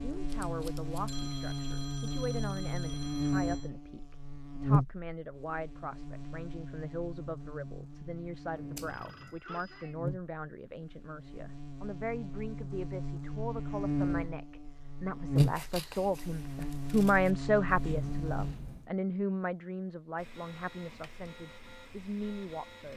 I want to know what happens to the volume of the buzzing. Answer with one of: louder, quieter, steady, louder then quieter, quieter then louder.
quieter then louder.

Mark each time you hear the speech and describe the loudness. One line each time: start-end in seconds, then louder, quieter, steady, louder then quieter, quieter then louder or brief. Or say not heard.
0.0-22.9 louder then quieter.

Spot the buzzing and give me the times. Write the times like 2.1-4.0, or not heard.
0.0-18.6.